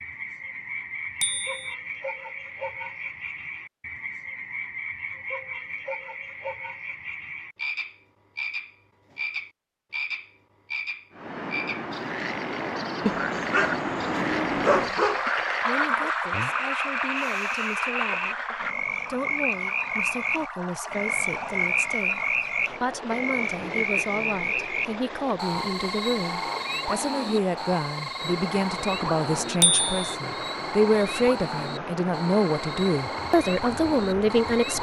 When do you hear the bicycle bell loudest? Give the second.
30 s.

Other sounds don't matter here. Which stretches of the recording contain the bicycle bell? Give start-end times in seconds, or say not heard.
1.2-1.8, 29.6-30.1.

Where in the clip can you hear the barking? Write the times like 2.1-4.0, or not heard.
13.1-15.2.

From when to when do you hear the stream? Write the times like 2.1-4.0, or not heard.
11.1-34.7.